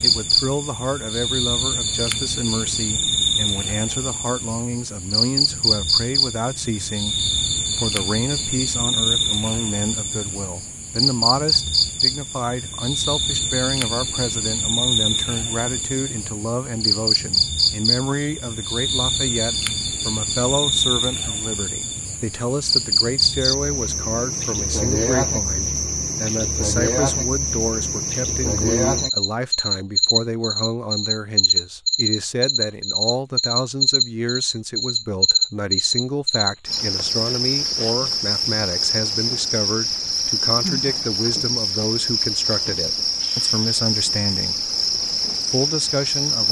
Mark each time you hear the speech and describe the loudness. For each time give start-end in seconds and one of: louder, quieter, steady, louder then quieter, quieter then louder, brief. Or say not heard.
0.0-44.7 steady
45.5-46.4 brief.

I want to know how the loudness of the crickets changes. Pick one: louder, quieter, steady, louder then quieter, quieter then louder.
steady.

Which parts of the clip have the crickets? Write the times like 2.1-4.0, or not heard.
0.0-46.4.